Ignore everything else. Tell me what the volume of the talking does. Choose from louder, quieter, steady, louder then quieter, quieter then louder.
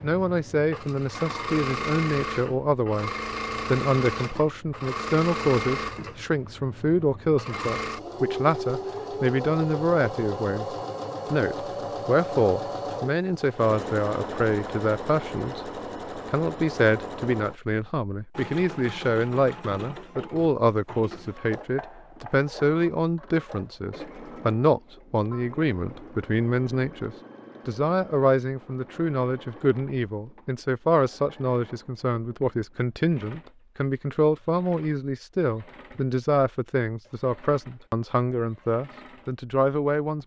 steady.